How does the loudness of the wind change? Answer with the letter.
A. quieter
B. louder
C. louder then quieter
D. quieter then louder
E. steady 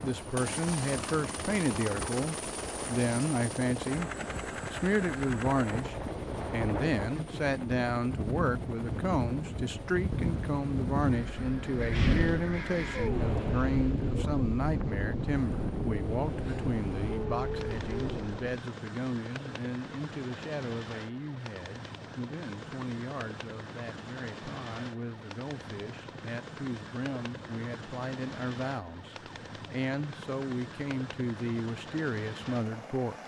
B.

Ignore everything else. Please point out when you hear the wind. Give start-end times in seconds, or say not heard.
0.0-18.6.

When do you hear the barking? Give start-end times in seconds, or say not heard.
not heard.